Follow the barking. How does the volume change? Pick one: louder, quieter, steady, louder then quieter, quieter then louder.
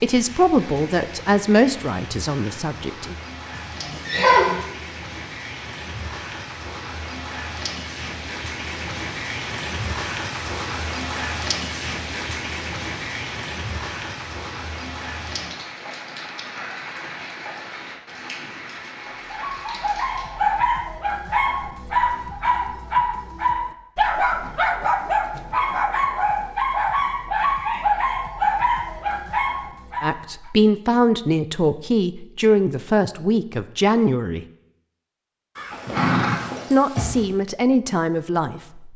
steady.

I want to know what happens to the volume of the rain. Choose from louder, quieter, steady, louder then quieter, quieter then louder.
louder then quieter.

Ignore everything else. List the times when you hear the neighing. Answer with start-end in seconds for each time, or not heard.
3.5-4.5, 35.5-37.2.